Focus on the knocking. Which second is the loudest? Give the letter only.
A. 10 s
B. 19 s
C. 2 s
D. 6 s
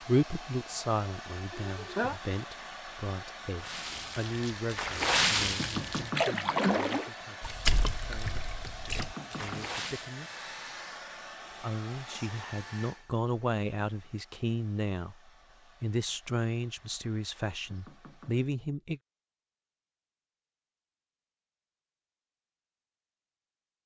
D.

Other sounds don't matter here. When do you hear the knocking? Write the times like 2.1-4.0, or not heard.
5.5-6.3, 8.9-9.8, 17.6-18.4.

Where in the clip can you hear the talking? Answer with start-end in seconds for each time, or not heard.
0.0-8.6, 9.3-10.4, 11.5-19.0.